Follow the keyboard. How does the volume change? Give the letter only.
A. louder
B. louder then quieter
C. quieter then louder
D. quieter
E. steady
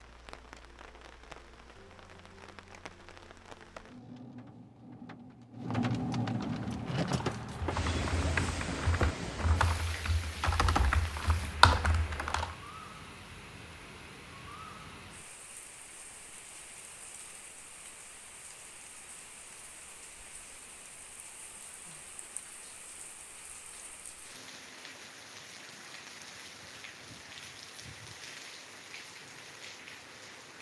A.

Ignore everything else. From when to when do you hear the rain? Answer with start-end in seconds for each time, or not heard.
0.0-30.5.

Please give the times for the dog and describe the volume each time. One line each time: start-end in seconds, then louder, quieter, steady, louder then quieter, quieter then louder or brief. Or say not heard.
not heard.